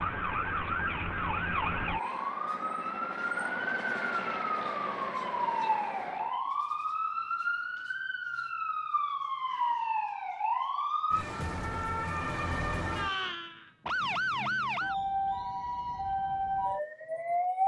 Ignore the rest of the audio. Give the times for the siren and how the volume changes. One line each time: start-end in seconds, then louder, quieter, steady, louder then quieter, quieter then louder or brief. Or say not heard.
0.0-17.6 steady.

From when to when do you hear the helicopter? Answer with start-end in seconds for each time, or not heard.
0.0-6.5.